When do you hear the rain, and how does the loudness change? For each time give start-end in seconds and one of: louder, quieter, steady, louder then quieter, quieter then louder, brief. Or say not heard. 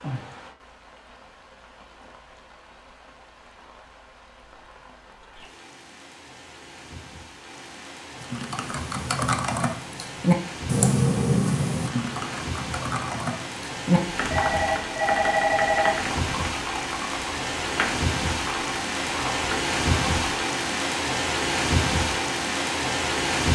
0.0-23.5 louder.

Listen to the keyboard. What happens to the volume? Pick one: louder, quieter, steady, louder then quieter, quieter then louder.
quieter.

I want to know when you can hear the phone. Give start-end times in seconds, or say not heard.
14.3-15.9.